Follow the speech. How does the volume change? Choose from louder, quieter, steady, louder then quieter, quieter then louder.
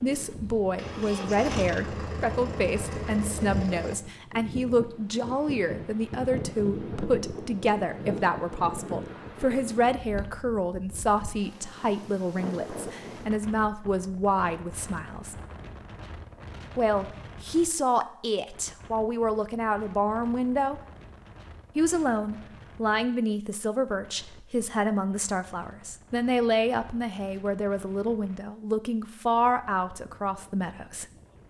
steady.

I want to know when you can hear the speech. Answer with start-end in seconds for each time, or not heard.
0.0-15.3, 16.8-20.8, 21.8-31.1.